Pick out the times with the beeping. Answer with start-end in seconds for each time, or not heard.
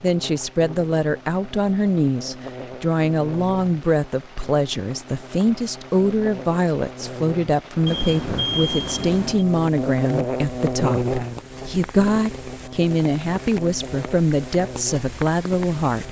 7.8-9.4.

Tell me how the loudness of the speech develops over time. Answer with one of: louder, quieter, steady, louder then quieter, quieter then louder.
steady.